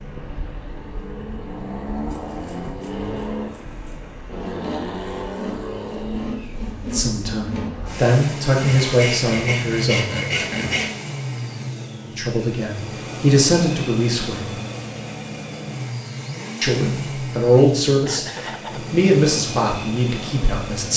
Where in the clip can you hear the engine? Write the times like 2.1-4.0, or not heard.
0.0-20.9.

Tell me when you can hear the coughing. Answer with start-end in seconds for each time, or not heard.
18.1-18.9.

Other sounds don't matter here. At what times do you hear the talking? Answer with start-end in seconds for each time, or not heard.
6.7-10.2, 12.1-14.5, 16.6-20.9.